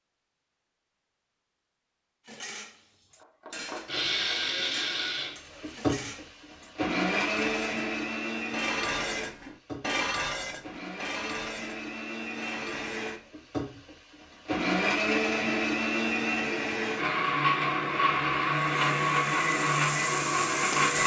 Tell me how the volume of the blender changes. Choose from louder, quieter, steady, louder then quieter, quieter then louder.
quieter then louder.